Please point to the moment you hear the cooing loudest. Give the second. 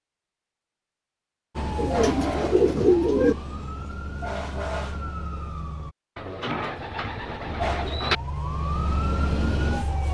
3 s.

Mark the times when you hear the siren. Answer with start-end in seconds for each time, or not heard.
1.6-6.0, 7.5-10.0.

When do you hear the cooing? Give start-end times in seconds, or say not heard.
1.8-3.4, 6.2-8.2.